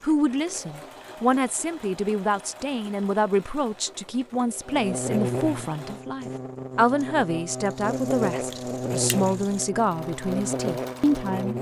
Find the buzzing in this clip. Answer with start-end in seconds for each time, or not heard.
4.7-11.5.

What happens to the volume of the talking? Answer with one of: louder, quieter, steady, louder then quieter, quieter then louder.
steady.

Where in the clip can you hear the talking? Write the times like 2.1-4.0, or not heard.
0.0-11.5.